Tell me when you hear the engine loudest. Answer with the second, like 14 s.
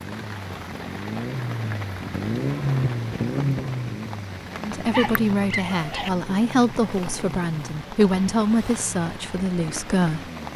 3 s.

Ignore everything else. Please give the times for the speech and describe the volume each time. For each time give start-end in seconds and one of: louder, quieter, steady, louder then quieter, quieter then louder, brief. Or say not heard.
4.6-10.5 steady.